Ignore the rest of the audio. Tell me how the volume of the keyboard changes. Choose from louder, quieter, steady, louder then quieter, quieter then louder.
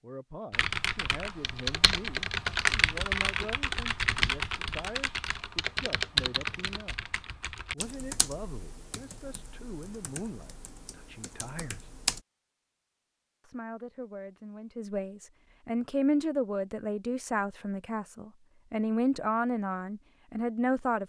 quieter.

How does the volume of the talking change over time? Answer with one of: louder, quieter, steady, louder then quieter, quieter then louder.
louder.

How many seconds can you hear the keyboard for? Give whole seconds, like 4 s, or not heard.
12 s.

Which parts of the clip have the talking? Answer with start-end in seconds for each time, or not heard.
0.0-7.1, 7.7-11.9, 13.4-21.0.